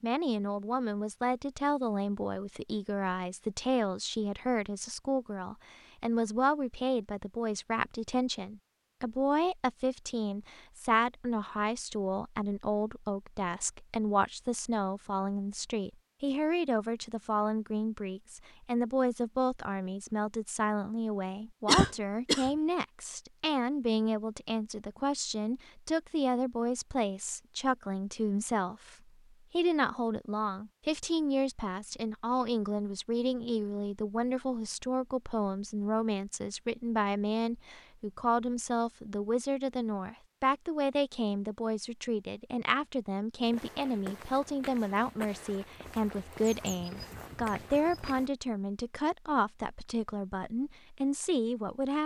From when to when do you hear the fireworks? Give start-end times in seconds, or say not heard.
not heard.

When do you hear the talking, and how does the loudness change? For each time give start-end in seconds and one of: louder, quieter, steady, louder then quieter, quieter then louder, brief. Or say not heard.
0.0-52.0 steady.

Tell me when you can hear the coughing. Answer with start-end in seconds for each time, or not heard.
21.6-22.5.